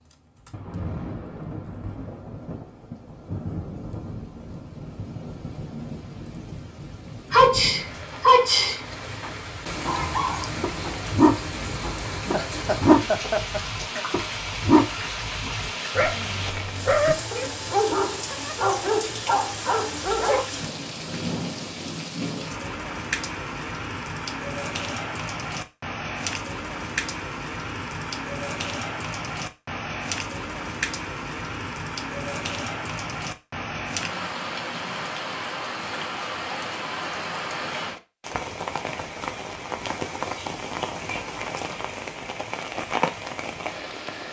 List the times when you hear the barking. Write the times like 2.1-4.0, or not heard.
9.8-20.4.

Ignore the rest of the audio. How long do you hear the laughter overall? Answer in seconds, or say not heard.
2 s.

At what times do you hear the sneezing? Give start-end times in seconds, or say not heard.
7.3-8.8.